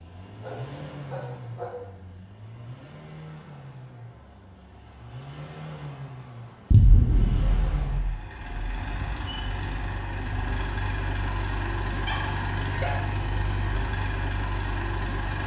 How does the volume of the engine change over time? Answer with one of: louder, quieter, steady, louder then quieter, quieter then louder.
louder.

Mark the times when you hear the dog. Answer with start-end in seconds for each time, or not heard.
0.4-2.1, 11.9-13.2.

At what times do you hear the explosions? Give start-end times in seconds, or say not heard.
6.7-8.1.